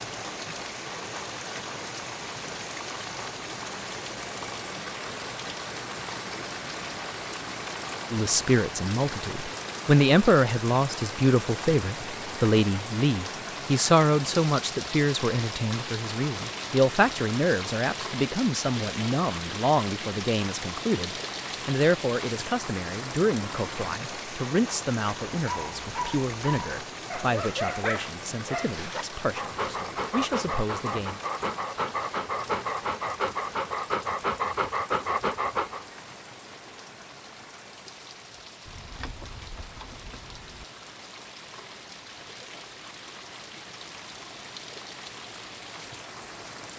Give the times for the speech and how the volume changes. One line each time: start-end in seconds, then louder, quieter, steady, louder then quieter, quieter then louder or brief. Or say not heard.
8.1-31.2 quieter.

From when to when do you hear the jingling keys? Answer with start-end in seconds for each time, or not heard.
38.6-40.6.